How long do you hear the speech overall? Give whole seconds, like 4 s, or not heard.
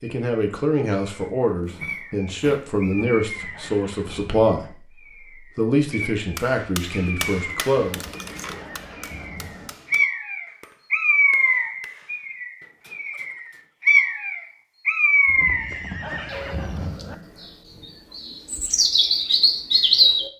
8 s.